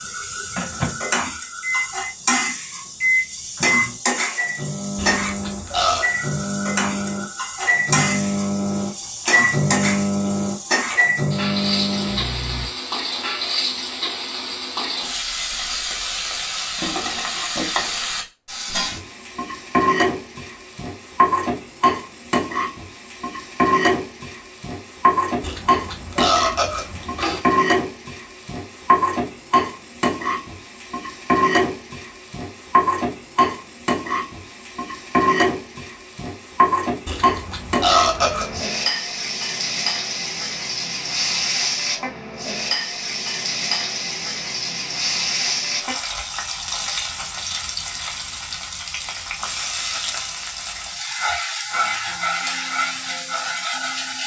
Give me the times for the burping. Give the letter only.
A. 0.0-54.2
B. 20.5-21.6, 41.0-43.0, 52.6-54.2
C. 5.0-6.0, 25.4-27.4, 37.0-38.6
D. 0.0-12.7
C.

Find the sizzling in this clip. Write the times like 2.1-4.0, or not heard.
0.0-54.2.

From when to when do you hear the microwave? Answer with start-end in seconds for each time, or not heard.
0.0-12.7.